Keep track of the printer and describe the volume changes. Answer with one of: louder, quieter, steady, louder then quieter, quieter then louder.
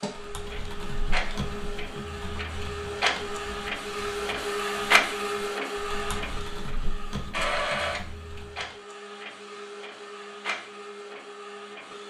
louder then quieter.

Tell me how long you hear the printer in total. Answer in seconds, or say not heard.
12 s.